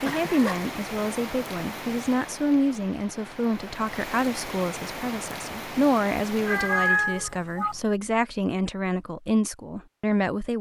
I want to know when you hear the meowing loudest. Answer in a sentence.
The volume of the meowing peaks at 7 seconds.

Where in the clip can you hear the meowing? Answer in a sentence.
The meowing can be heard from 0.0 to 0.7 s and from 6.5 to 7.8 s.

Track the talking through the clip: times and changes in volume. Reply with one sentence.
The talking can be heard from 0.0 to 10.5 s, at a steady volume.